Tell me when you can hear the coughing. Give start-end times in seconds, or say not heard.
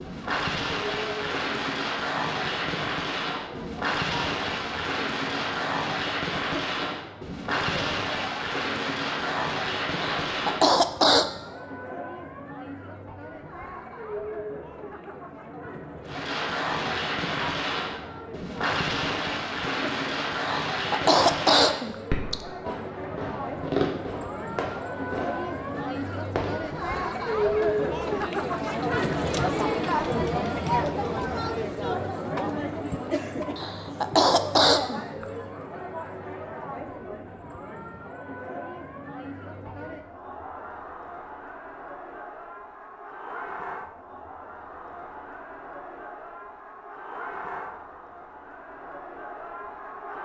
10.2-11.3, 20.7-22.4, 33.5-35.0.